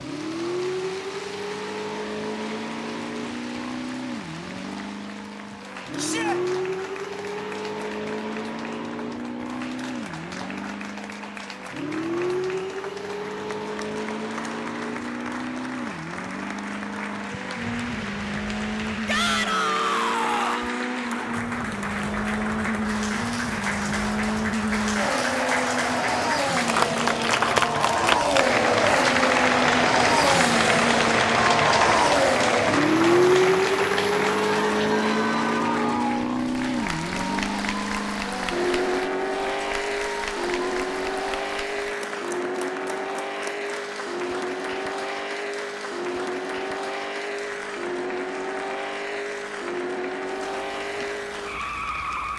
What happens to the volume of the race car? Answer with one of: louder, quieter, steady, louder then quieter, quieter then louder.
louder then quieter.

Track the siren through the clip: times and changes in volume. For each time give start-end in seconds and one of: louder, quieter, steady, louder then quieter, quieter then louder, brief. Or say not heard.
not heard.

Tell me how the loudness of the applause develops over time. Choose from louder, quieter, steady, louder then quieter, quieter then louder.
louder then quieter.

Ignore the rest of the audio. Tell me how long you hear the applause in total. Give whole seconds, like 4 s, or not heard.
52 s.